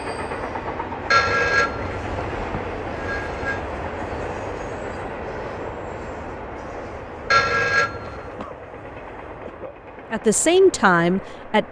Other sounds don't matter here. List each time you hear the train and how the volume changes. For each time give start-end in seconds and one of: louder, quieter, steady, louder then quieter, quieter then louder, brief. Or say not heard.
0.0-11.6 quieter.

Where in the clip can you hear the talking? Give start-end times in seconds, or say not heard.
10.1-11.6.